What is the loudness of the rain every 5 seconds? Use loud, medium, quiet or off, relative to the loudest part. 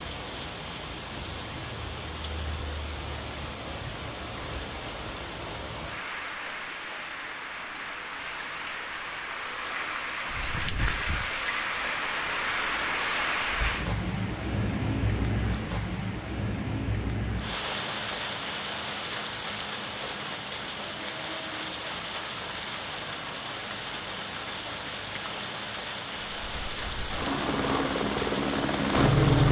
medium, medium, loud, loud, medium, medium.